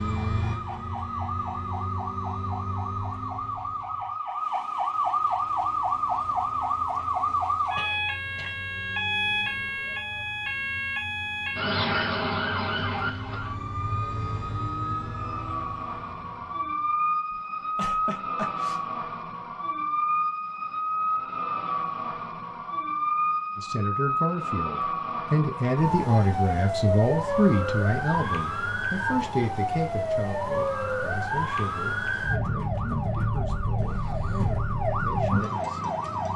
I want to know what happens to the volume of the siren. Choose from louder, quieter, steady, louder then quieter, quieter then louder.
steady.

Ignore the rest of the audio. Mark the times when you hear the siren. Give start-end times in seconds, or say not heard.
0.0-36.3.